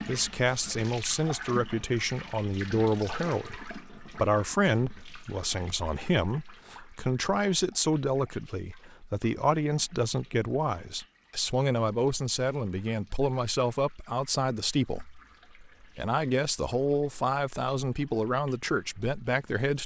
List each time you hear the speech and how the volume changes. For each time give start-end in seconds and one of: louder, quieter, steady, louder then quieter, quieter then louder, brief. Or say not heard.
0.1-19.8 steady.